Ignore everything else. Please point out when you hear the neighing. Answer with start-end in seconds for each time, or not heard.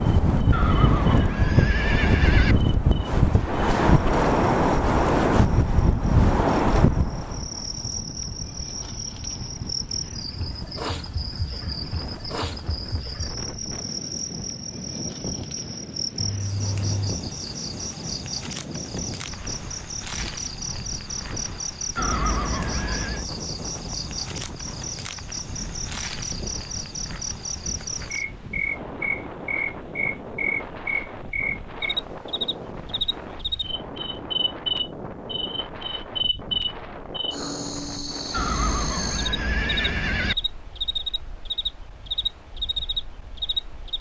0.5-2.5, 21.9-23.2, 38.3-40.4.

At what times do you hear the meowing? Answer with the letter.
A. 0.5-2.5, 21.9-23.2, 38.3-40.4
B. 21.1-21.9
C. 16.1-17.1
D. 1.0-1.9
C.